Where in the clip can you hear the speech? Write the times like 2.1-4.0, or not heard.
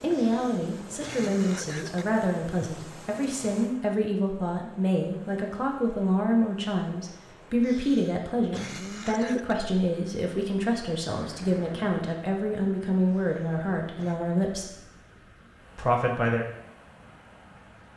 0.0-14.8, 15.8-16.4.